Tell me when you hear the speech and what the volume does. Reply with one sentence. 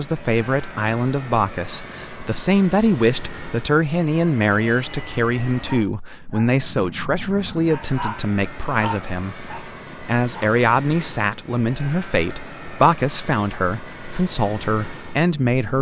The speech can be heard from 0.0 to 15.7 s, at a steady volume.